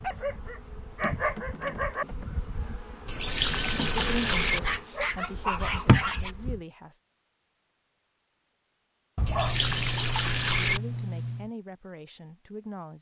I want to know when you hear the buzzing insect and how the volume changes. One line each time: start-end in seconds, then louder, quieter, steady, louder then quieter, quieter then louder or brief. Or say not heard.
0.0-6.6 louder.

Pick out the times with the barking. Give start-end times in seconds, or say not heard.
0.0-2.0, 4.6-6.3, 9.2-11.5.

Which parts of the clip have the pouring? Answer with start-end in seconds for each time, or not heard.
3.0-4.6, 9.2-10.8.